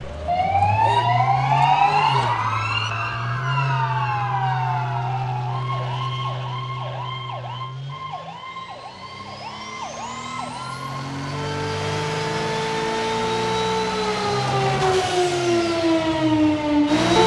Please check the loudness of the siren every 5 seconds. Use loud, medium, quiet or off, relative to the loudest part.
loud, quiet, medium, loud.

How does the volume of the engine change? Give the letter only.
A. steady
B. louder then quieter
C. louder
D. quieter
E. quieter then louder
E.